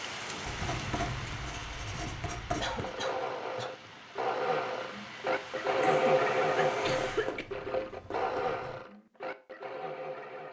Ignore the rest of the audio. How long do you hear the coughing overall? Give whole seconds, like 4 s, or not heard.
3 s.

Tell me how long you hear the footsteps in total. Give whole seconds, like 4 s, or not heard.
not heard.